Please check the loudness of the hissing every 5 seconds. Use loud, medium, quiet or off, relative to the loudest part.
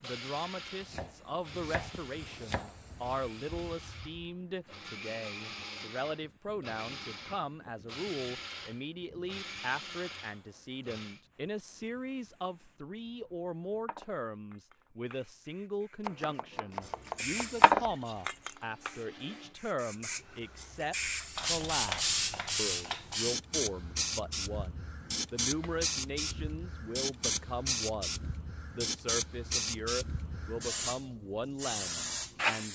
quiet, quiet, quiet, loud, loud, loud, loud.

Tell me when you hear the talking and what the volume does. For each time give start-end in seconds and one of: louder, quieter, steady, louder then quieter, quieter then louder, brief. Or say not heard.
0.0-32.7 steady.